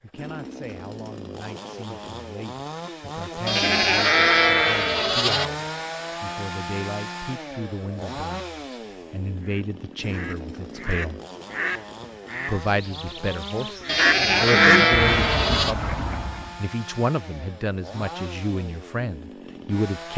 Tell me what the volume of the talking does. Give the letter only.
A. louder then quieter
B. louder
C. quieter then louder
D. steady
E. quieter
B.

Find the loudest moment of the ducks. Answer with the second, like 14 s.
15 s.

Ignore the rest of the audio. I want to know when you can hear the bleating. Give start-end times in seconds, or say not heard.
3.5-5.5, 13.8-15.8.